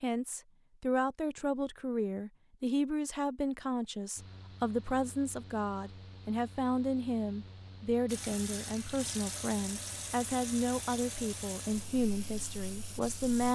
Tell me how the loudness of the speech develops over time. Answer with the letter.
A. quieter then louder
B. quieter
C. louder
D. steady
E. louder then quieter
D.